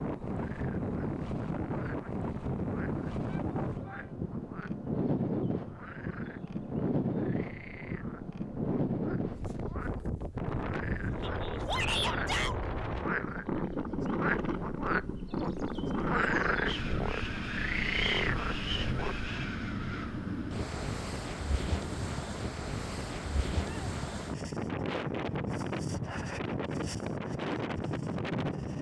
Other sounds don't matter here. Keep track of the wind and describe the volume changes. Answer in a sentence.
The volume of the wind stays about the same.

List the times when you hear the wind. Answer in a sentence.
You can hear the wind from 0.0 to 28.7 s.